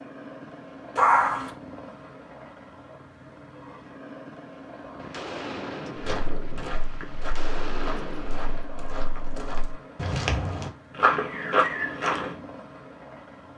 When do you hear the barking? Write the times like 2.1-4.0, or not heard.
0.9-1.5.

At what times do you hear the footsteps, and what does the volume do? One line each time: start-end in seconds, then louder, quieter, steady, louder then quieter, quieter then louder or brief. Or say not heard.
6.0-12.4 louder.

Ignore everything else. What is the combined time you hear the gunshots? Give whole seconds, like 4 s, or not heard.
4 s.